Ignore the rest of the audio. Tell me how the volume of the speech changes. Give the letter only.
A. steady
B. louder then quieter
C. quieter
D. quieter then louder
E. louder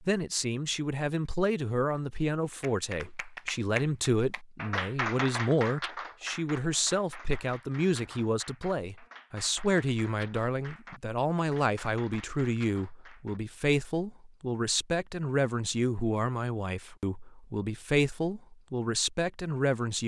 A.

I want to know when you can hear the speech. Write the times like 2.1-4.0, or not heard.
0.0-20.0.